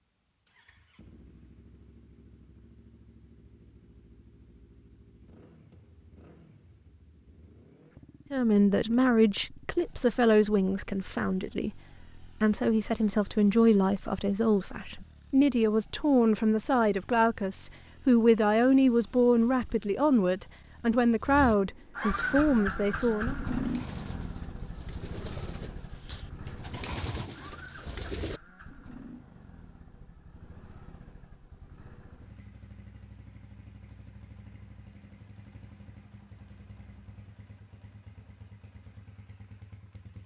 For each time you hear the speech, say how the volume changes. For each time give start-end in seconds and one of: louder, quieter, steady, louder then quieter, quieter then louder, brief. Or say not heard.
8.3-23.4 steady.